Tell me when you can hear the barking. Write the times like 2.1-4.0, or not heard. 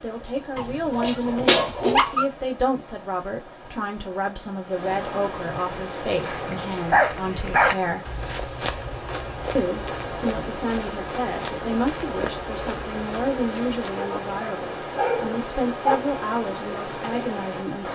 0.6-2.2, 6.4-8.0, 13.9-15.9.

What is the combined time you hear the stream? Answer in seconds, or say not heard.
18 s.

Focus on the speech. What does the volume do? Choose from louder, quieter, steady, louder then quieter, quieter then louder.
steady.